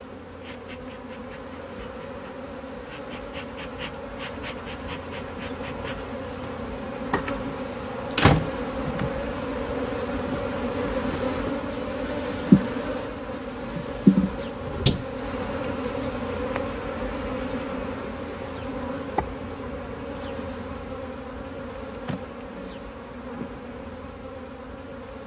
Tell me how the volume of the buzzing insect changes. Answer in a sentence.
The volume of the buzzing insect goes up, then down.